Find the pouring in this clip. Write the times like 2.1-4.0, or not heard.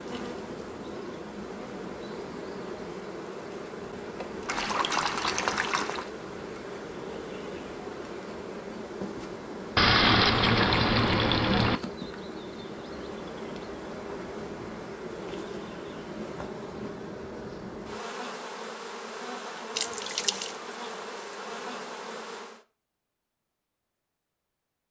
4.5-6.0, 9.8-11.8, 19.8-20.6.